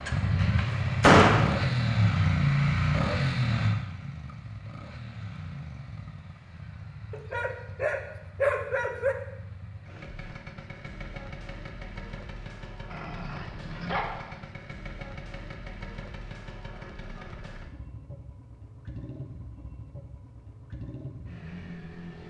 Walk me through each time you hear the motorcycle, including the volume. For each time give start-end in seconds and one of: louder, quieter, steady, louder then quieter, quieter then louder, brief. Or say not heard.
0.0-22.2 quieter.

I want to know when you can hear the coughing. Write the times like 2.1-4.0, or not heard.
not heard.